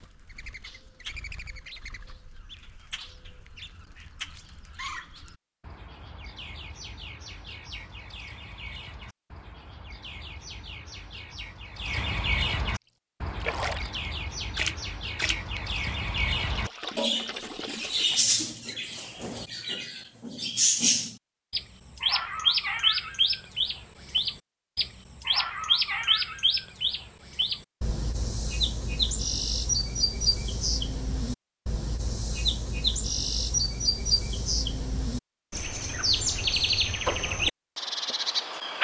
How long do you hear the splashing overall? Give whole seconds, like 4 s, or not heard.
5 s.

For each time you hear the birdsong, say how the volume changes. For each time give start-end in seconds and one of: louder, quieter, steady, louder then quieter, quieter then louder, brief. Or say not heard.
0.0-38.7 louder.